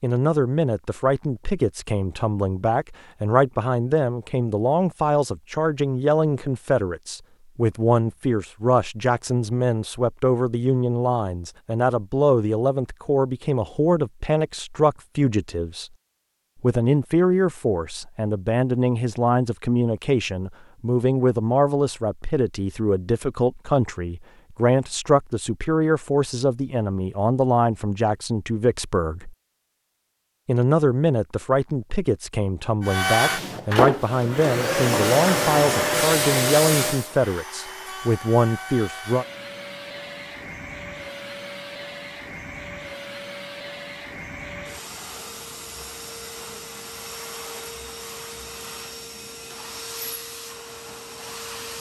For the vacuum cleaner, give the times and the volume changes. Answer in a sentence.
The vacuum cleaner can be heard from 32.8 to 51.7 s, getting quieter.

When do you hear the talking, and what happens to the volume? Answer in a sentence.
You can hear the talking from 0.0 to 15.9 s, at a steady volume; from 16.6 to 29.4 s, at a steady volume; and from 30.4 to 39.2 s, at a steady volume.